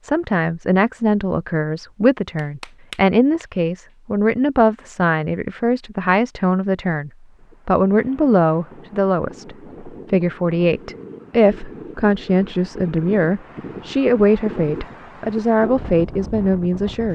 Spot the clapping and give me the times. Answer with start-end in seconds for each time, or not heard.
2.4-4.0.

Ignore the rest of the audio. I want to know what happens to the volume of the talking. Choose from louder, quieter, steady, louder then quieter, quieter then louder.
steady.